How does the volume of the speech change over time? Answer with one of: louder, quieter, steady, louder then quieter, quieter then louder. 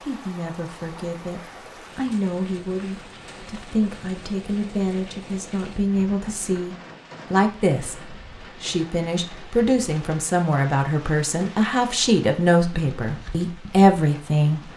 louder.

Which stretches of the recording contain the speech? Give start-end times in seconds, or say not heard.
0.0-14.7.